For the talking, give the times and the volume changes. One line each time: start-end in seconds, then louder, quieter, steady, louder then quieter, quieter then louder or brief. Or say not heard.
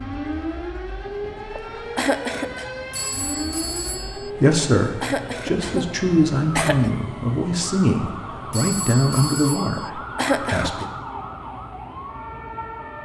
4.2-10.8 steady.